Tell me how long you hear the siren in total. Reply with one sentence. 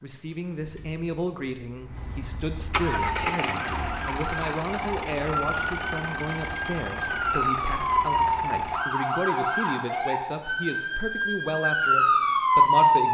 You can hear the siren for 10 seconds altogether.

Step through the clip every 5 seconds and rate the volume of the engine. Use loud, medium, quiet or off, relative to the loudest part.
loud, loud, off.